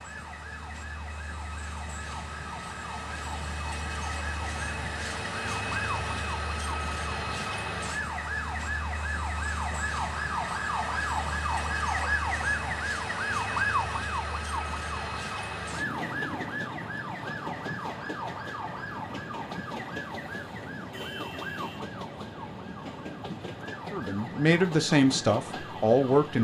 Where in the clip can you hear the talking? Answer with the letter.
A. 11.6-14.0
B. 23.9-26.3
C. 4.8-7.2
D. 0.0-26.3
B.